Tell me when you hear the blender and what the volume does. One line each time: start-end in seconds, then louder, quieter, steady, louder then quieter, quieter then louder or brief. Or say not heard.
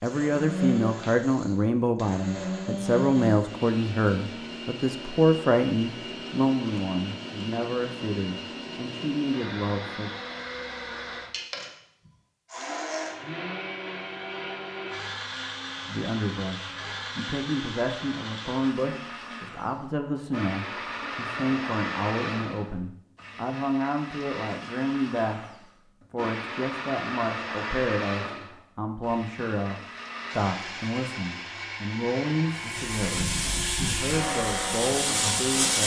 0.0-35.8 steady.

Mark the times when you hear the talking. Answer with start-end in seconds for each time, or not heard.
0.0-10.1, 15.8-35.8.